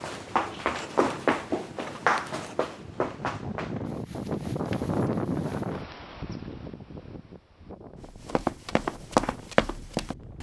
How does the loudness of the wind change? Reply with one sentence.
The loudness of the wind goes up, then down.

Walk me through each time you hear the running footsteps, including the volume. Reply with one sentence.
The running footsteps can be heard from 0.0 to 5.7 s, getting quieter; and briefly from 8.1 to 10.3 s.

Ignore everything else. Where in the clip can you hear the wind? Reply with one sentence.
You can hear the wind from 0.0 to 10.3 s.